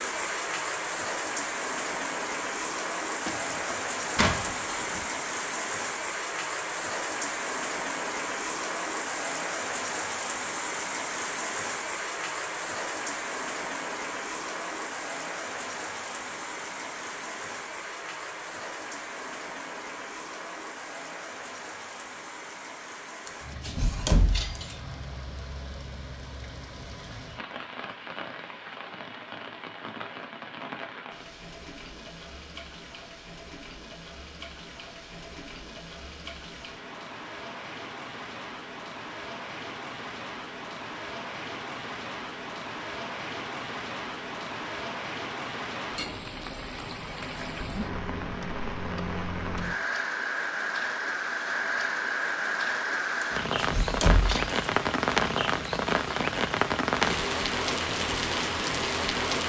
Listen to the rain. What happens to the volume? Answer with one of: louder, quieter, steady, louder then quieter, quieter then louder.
quieter then louder.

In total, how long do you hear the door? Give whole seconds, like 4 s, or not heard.
4 s.